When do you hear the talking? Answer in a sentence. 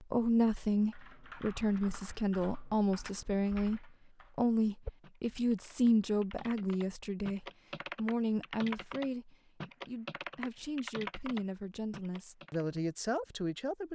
You can hear the talking from 0.0 to 13.8 s.